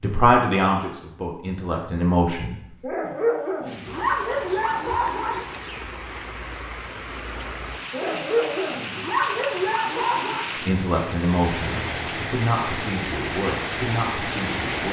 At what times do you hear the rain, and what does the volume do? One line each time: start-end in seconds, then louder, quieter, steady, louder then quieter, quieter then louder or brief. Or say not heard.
3.6-14.8 louder.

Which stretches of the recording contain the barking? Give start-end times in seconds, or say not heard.
2.8-5.5, 7.9-10.4.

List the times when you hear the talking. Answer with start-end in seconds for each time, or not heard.
0.0-2.5, 10.7-14.8.